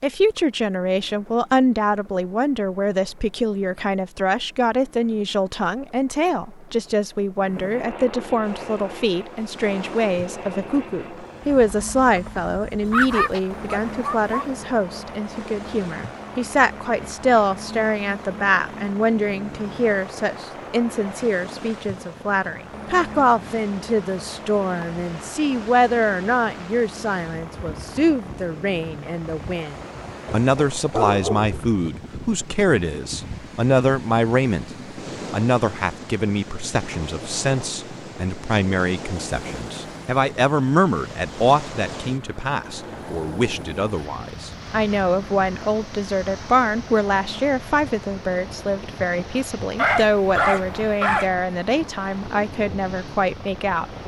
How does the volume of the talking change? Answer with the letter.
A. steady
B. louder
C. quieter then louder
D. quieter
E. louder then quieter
A.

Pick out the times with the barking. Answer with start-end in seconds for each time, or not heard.
12.8-14.4, 30.2-31.6, 49.8-51.3.